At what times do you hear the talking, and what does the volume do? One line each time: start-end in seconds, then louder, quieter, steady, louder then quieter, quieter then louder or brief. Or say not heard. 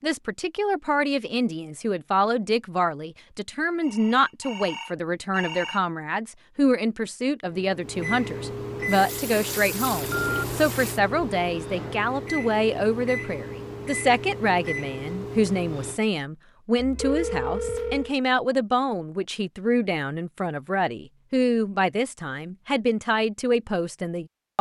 0.0-24.5 steady.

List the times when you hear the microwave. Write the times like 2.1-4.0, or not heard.
7.5-16.0.